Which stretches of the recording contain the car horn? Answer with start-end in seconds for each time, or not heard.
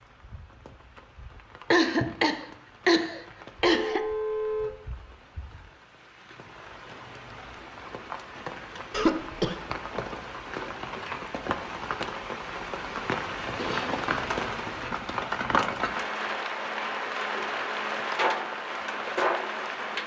3.6-4.8.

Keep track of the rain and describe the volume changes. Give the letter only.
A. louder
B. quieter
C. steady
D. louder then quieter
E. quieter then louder
A.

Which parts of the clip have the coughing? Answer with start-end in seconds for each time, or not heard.
1.7-4.0, 8.9-9.6, 13.6-14.0.